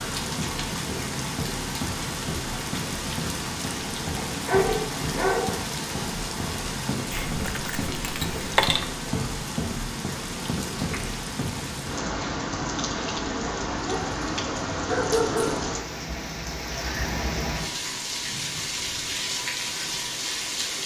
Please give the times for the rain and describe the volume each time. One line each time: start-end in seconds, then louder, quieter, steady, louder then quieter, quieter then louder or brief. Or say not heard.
0.0-20.8 steady.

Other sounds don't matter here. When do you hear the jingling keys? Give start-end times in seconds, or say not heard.
7.1-8.8.